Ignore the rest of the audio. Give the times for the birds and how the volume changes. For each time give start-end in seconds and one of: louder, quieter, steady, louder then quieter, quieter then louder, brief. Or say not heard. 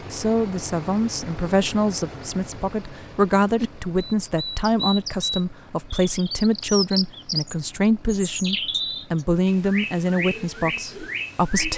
3.5-11.7 steady.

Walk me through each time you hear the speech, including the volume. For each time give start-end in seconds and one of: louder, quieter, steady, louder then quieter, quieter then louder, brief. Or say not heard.
0.1-11.7 steady.